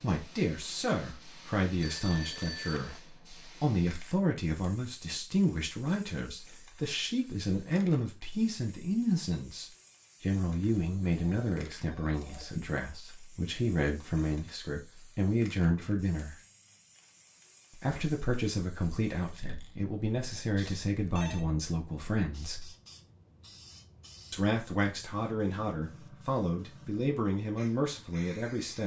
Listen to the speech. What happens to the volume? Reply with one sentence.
The volume of the speech stays about the same.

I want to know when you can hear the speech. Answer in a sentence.
The speech can be heard from 0.0 to 16.4 s, from 17.7 to 22.7 s and from 24.3 to 28.8 s.